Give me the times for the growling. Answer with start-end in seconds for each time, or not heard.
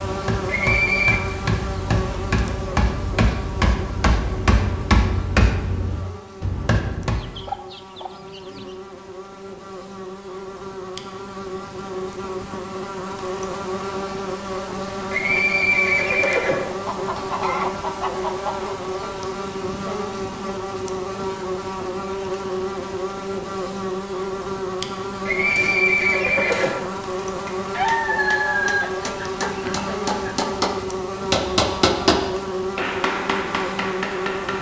not heard.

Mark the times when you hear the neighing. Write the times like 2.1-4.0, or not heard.
0.5-1.2, 15.1-16.8, 25.2-26.9.